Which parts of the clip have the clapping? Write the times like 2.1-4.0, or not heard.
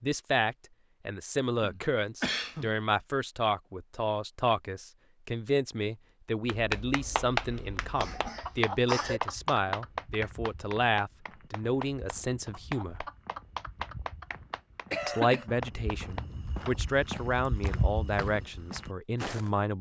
6.5-16.8.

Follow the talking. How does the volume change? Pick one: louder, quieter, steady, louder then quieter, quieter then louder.
steady.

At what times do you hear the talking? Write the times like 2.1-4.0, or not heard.
0.0-13.1, 15.1-19.7.